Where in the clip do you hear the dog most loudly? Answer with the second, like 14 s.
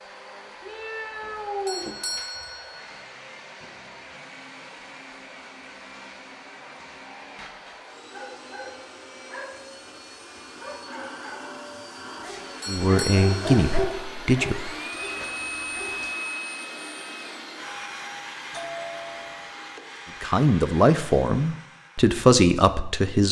14 s.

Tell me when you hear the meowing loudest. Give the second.
2 s.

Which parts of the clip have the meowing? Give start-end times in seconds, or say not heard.
0.6-2.5, 14.9-16.1.